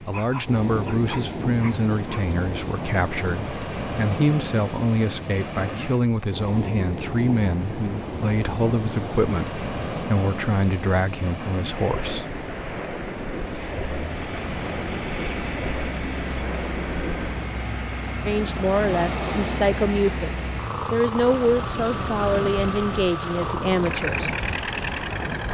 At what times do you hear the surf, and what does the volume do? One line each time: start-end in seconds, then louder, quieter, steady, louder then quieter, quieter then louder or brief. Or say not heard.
0.0-25.5 steady.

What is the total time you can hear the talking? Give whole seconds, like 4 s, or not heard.
18 s.